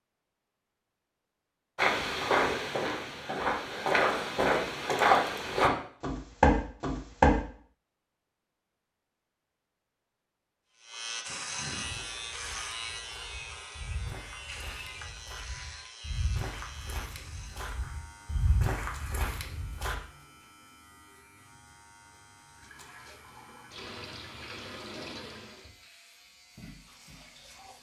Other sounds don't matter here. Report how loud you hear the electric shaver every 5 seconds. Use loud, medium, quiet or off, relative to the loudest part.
off, off, loud, medium, quiet, quiet.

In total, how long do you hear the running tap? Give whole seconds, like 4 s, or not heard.
5 s.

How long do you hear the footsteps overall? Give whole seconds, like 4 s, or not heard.
14 s.